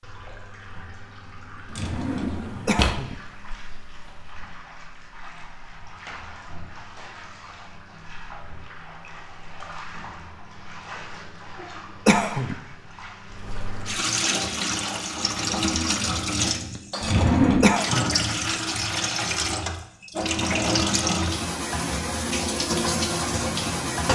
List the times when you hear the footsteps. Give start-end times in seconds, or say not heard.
not heard.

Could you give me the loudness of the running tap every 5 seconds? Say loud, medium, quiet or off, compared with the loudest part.
quiet, quiet, medium, loud, loud.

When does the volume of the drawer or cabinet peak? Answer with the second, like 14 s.
17 s.